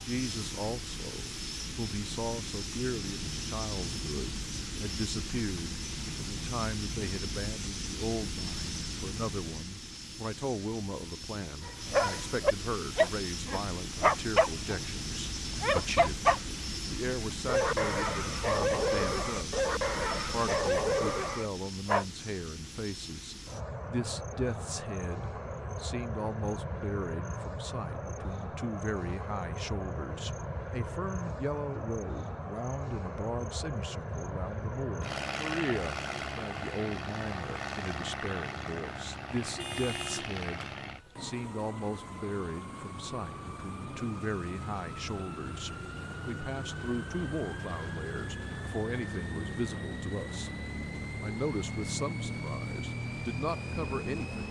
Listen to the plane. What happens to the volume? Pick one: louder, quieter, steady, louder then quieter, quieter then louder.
steady.